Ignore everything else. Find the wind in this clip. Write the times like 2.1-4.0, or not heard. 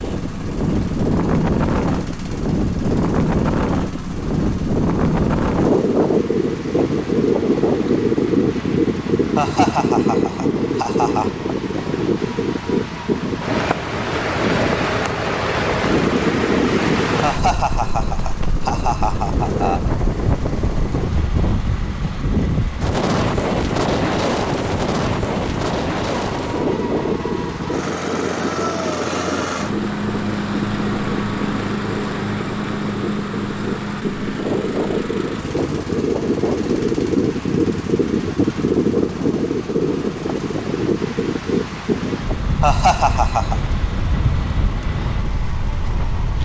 0.0-46.4.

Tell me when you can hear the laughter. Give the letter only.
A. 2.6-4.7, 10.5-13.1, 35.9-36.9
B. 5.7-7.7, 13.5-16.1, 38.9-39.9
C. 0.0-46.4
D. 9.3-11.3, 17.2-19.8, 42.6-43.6
D.